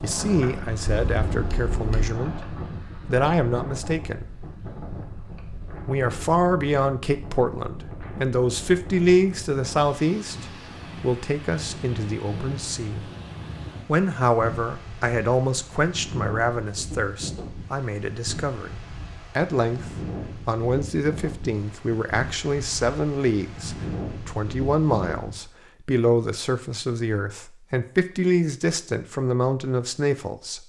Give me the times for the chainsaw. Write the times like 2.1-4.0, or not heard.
not heard.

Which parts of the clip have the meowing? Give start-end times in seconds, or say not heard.
0.8-2.1.